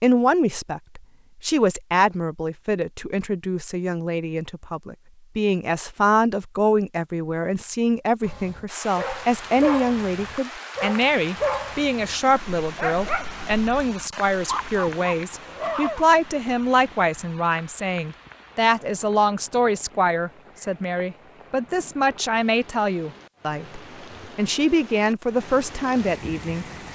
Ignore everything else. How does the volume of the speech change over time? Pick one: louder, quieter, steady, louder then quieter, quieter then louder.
steady.